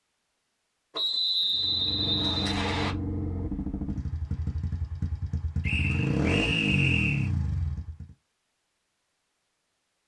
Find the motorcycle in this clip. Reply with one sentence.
You can hear the motorcycle from 1.5 to 8.2 s.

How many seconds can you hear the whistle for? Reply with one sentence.
You can hear the whistle for 4 seconds altogether.